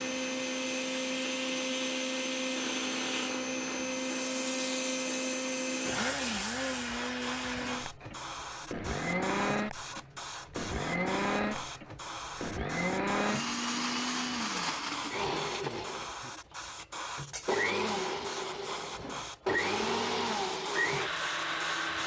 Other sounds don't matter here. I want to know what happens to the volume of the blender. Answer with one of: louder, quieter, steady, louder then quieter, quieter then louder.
steady.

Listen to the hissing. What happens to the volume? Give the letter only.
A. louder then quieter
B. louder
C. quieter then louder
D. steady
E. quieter
D.